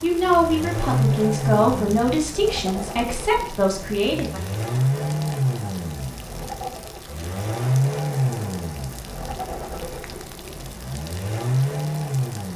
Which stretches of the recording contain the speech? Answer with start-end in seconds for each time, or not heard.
0.0-4.5.